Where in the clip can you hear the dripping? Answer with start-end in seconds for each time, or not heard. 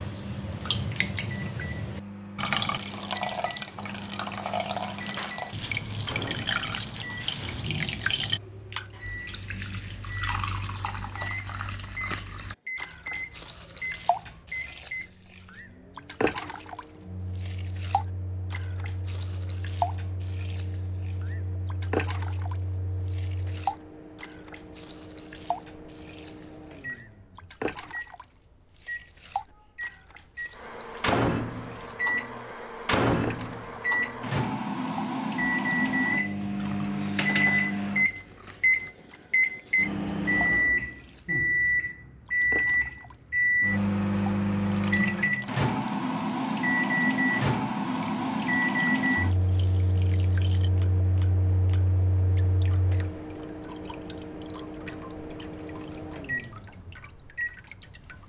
0.0-58.2.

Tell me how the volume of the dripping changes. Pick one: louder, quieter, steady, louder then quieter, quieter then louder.
quieter.